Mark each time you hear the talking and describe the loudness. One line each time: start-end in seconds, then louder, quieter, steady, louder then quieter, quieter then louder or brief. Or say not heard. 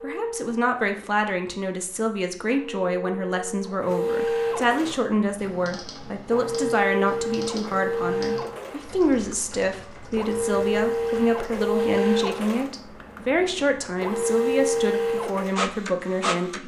0.0-16.6 steady.